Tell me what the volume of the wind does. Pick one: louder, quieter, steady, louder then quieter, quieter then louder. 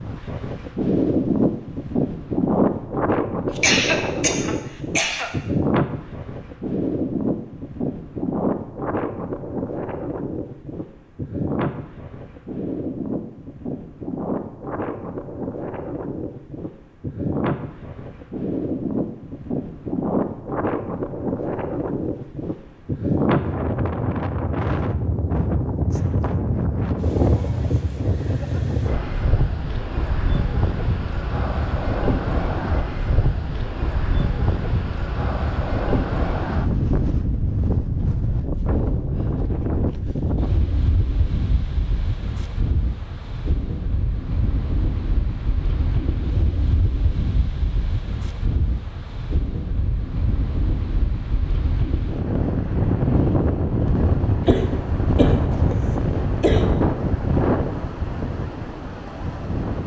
steady.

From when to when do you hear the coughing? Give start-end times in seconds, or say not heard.
3.5-5.3, 54.5-56.6.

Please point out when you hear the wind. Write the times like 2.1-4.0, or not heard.
0.0-59.8.